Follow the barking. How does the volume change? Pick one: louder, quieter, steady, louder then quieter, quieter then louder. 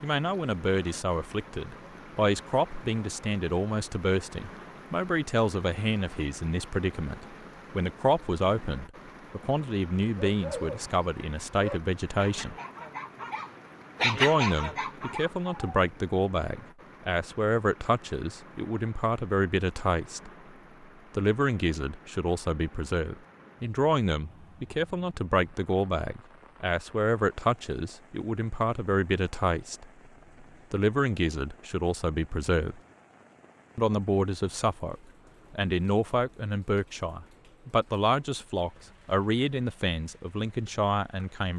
louder then quieter.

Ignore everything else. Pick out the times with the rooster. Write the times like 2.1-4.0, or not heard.
not heard.